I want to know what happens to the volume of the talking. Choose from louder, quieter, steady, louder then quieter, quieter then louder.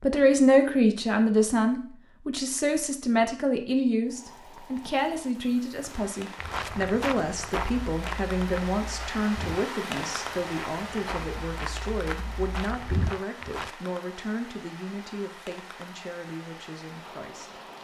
quieter.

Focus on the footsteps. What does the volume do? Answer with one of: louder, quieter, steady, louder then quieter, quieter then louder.
quieter then louder.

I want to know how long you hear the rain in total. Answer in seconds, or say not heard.
14 s.